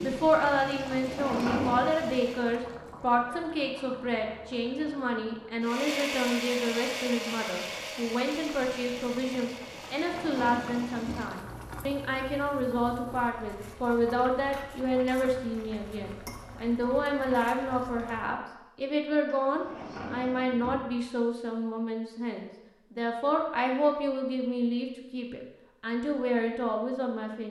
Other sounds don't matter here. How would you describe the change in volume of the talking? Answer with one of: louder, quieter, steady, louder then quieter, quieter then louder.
steady.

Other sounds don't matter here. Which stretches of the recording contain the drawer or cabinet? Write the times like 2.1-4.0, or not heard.
0.9-1.9, 9.9-11.6, 19.2-20.9.